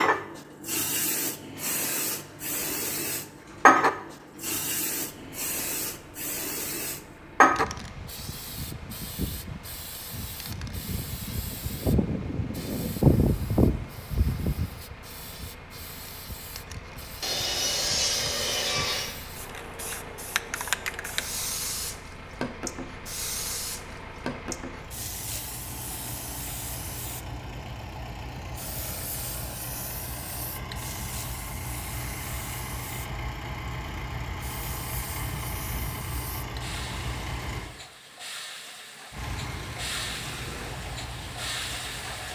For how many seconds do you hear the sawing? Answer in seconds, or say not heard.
2 s.